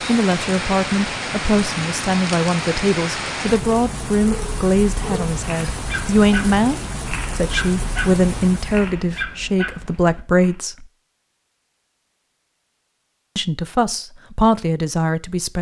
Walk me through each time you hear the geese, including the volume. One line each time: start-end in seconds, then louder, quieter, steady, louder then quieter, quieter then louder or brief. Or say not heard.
not heard.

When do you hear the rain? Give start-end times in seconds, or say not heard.
0.0-8.9.